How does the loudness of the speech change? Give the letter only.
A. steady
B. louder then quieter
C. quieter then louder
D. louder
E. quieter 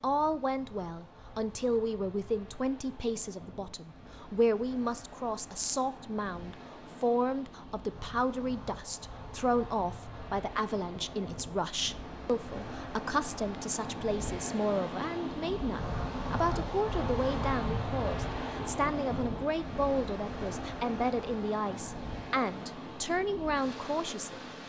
A.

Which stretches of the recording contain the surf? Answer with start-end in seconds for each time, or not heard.
0.0-24.6.